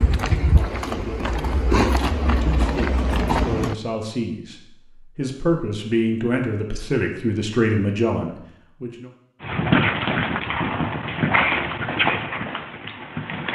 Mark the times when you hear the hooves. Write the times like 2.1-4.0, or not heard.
0.0-3.8, 9.4-13.5.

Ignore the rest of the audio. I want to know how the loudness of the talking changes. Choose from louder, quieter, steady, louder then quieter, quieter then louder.
louder.